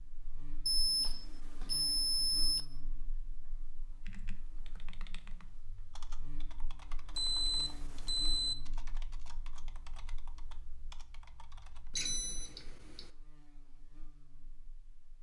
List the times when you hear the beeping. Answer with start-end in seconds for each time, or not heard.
0.7-2.6, 7.2-8.6, 11.9-13.1.